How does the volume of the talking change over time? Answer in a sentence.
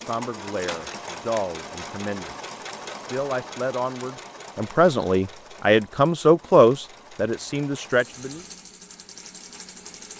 The volume of the talking goes up.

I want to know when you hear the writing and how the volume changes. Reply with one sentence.
You can't hear the writing here.